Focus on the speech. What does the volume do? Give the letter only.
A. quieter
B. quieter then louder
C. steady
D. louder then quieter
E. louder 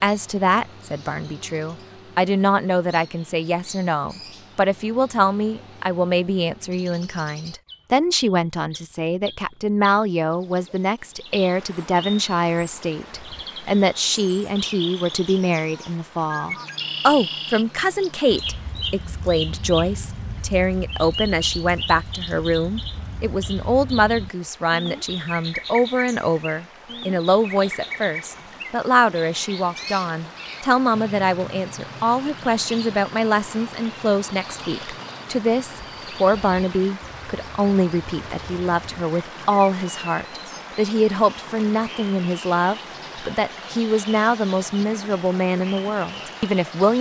C.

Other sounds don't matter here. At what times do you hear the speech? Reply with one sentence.
The speech can be heard from 0.0 to 46.9 s.